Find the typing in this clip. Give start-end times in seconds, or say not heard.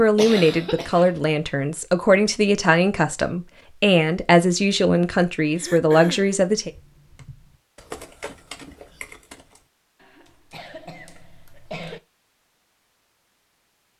6.5-11.9.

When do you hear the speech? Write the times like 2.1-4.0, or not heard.
0.0-6.7.